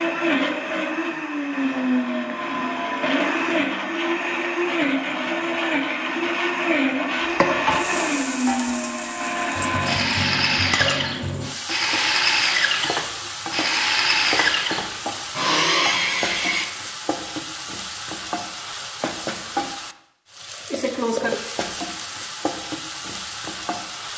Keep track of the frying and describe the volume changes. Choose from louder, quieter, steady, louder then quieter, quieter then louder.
steady.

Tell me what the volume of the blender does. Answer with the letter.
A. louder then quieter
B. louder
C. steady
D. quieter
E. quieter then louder
C.